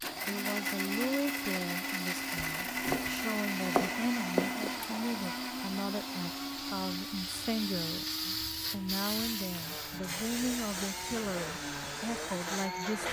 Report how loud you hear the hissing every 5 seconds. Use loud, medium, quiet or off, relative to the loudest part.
medium, loud, loud.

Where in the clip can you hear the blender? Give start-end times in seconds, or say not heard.
0.0-13.0.